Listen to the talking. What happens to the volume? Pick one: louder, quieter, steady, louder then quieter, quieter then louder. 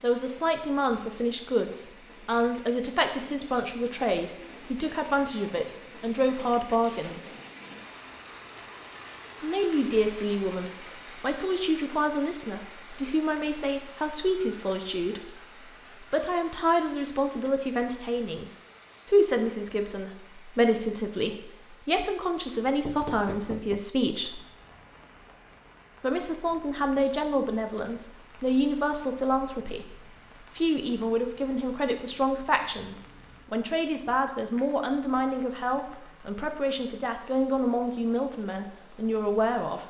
steady.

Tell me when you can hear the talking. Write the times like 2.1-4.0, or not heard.
0.0-7.2, 9.4-18.4, 19.1-24.4, 26.0-29.9, 30.6-39.8.